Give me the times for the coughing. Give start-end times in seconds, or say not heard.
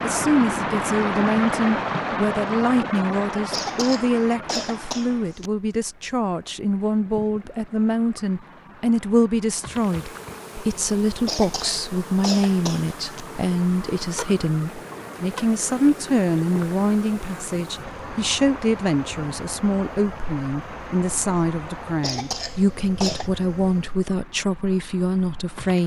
3.5-5.5, 11.2-13.2, 22.0-23.3.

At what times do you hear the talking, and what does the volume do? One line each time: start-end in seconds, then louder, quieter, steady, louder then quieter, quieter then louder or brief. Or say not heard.
0.0-25.8 steady.